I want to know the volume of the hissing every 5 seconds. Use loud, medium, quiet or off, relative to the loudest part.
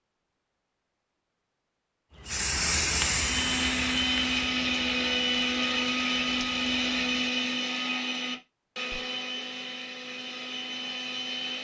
loud, quiet, off.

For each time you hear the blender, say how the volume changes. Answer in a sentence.
You can hear the blender from 3.1 to 11.5 s, getting quieter.